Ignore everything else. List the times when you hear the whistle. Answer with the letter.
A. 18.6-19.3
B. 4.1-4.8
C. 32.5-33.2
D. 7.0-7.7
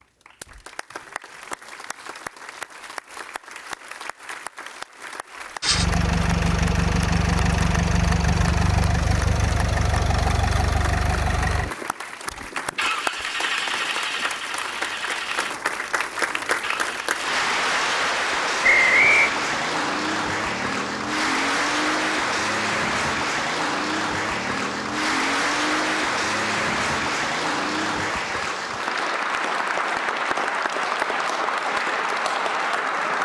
A.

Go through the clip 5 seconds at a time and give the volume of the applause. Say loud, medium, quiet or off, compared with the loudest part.
quiet, quiet, medium, loud, loud, loud, loud.